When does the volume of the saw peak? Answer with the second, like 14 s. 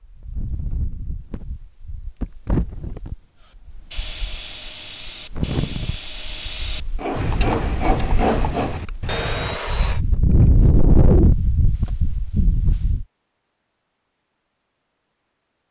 8 s.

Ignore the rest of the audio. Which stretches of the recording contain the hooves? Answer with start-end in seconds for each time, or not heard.
7.2-9.6.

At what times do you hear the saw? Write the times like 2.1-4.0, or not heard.
3.4-10.0.